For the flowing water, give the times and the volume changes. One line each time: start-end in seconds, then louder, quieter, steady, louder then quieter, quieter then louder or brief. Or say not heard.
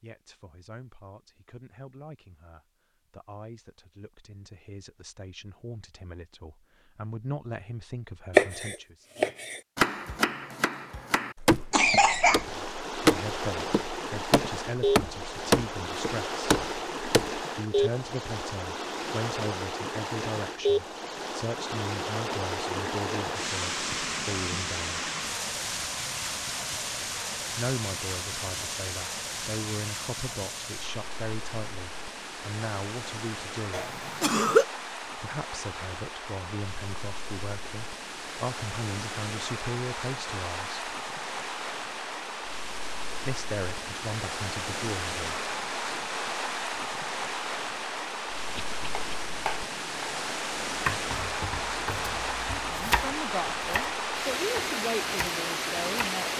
12.2-56.3 quieter then louder.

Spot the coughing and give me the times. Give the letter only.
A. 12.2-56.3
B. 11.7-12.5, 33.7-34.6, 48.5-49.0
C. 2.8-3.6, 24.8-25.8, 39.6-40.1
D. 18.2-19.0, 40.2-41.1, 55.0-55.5
B.